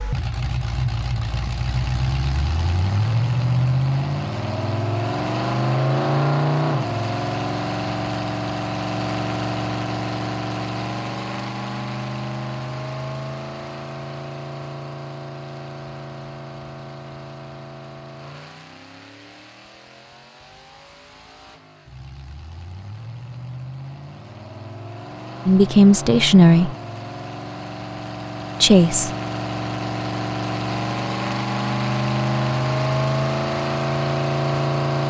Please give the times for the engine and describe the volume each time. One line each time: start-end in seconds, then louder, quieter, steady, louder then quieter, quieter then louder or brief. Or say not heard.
0.0-35.0 quieter then louder.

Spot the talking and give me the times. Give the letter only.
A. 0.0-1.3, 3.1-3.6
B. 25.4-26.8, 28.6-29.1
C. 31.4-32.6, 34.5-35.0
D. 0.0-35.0
B.